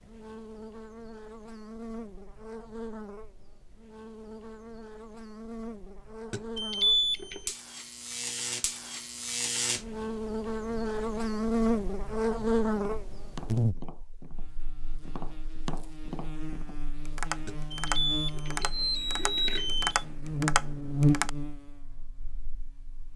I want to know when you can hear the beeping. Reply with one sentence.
You can hear the beeping from 6.3 to 7.5 s and from 17.4 to 20.1 s.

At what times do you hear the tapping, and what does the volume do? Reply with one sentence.
You can hear the tapping from 12.7 to 21.3 s, getting louder.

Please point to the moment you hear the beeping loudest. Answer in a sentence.
The loudest moment of the beeping is at 7 seconds.